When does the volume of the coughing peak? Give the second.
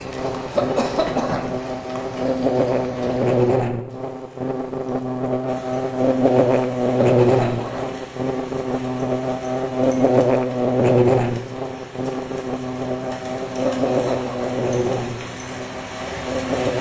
1 s.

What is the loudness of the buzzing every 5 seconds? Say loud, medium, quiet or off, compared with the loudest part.
loud, loud, loud, medium.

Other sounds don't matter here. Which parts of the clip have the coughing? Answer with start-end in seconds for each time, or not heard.
0.5-1.6, 7.2-8.0, 13.6-14.6.